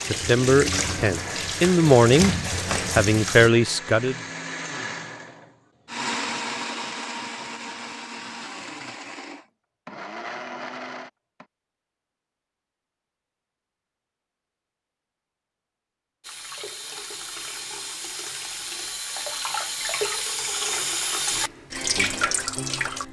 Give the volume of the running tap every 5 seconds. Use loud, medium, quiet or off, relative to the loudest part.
loud, off, off, medium, loud.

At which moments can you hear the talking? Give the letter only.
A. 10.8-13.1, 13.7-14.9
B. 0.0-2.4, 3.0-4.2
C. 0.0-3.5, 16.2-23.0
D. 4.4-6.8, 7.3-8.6
B.